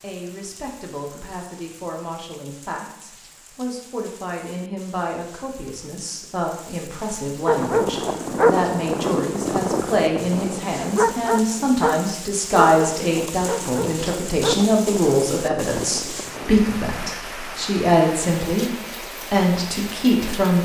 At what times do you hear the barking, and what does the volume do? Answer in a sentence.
The barking can be heard from 7.5 to 16.6 s, getting quieter.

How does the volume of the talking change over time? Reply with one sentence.
The loudness of the talking goes up.